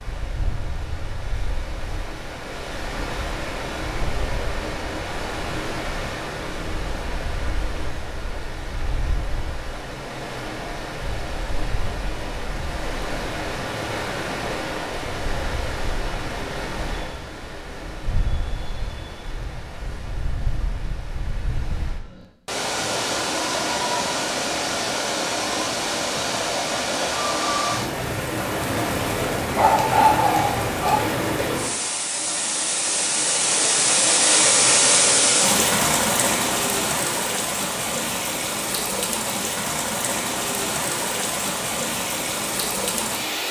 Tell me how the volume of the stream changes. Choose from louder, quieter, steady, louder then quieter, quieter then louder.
louder.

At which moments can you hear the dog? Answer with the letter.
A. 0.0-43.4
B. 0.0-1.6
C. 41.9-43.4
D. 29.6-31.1
D.